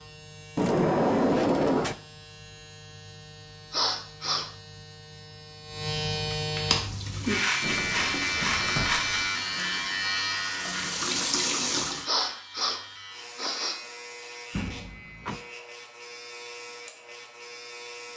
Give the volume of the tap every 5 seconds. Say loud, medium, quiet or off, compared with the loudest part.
off, medium, loud, off.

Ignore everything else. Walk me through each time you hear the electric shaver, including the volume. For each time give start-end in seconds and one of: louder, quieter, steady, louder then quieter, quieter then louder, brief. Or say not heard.
0.0-18.1 louder then quieter.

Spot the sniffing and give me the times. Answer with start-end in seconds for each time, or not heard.
3.7-4.5, 12.1-13.8.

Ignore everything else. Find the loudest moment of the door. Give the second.
1 s.